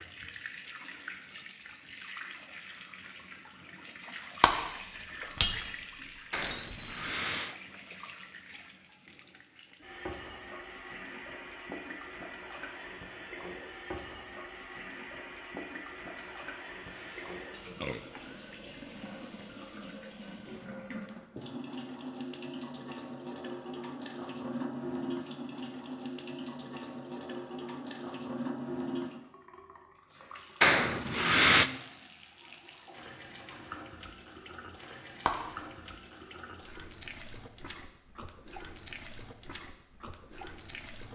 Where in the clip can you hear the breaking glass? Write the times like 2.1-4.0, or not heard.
4.4-7.0, 35.2-35.7.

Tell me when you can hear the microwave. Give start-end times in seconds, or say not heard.
not heard.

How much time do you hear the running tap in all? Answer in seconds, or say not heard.
41 s.